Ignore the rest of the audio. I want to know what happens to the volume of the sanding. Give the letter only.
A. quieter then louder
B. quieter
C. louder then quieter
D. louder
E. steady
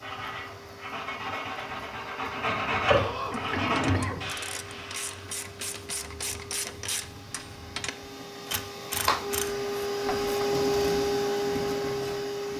C.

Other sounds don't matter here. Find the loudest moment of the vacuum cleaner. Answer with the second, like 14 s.
11 s.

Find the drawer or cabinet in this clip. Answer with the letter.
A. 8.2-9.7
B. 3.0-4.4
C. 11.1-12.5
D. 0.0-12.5
B.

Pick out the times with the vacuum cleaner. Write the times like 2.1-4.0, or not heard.
0.0-12.5.